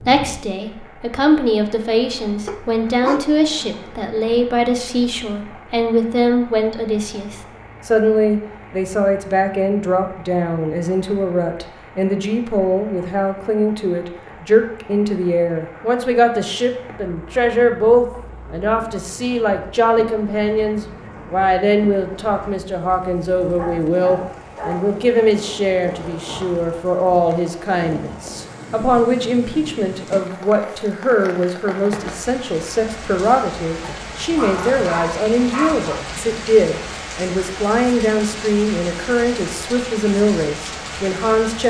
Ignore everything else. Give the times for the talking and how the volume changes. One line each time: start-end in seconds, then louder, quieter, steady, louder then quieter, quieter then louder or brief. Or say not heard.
0.0-41.6 steady.